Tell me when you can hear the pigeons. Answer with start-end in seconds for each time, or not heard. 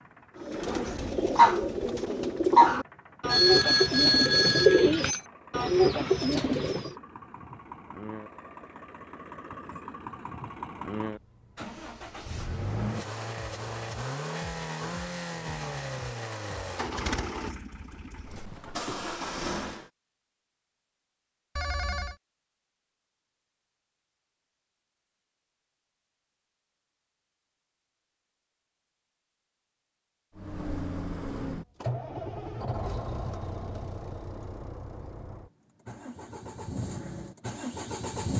0.4-6.9.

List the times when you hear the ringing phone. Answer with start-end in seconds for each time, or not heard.
3.2-5.2, 21.6-22.1.